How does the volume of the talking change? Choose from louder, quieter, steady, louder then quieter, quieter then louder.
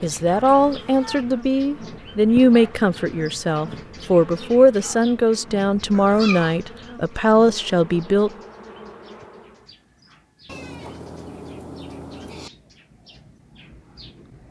steady.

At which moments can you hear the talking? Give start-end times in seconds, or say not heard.
0.0-8.3.